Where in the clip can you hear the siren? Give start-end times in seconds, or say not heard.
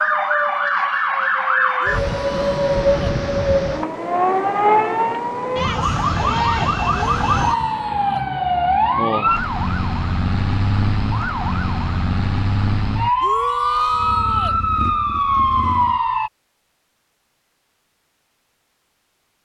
0.0-16.3.